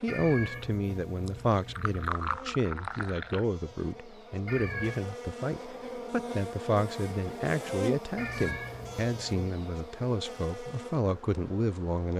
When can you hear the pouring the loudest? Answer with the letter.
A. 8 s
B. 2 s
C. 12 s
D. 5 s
B.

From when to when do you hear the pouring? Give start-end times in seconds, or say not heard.
1.2-3.5.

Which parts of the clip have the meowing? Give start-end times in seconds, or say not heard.
0.1-2.1, 4.5-5.0, 8.2-9.5.